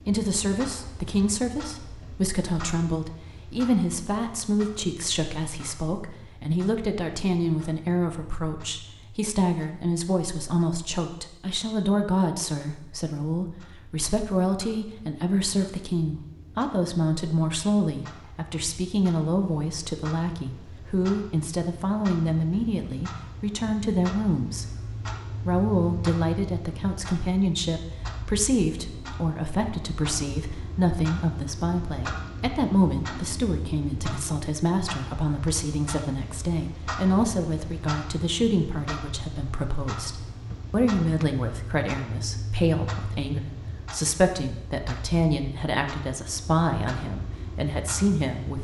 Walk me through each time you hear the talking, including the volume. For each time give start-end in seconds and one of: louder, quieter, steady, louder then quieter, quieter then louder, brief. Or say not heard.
0.1-48.5 steady.